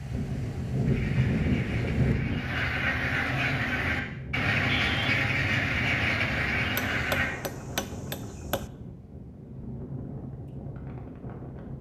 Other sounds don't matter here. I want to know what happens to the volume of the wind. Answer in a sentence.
The loudness of the wind goes down.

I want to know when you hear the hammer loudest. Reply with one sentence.
The volume of the hammer peaks at 7 seconds.